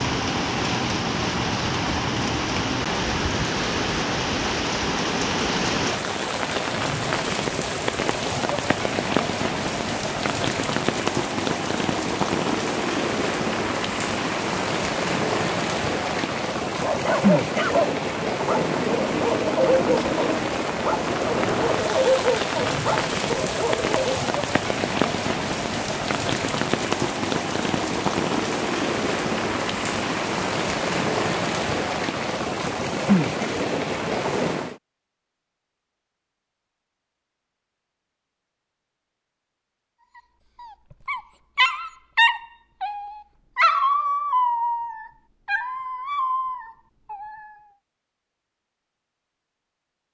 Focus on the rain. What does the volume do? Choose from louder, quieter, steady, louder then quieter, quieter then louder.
steady.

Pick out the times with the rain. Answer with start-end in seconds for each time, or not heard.
0.0-34.8.